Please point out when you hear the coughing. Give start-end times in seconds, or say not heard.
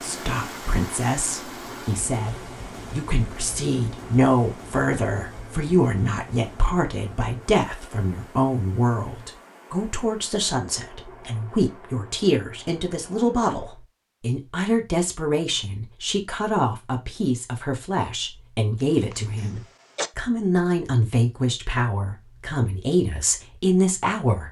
18.8-20.1.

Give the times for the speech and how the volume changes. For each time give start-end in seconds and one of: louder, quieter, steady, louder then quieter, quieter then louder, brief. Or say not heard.
0.0-24.4 steady.